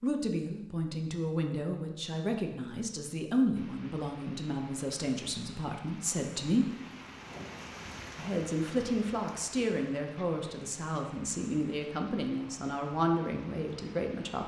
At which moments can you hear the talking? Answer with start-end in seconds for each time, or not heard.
0.0-6.7, 8.2-14.4.